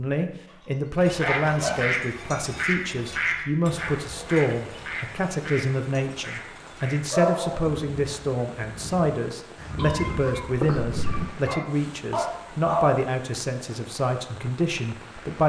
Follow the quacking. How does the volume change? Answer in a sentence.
The loudness of the quacking goes down, then up.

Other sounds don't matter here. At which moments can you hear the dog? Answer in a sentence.
You can hear the dog from 1.1 to 2.0 s, from 7.1 to 7.7 s and from 11.4 to 12.8 s.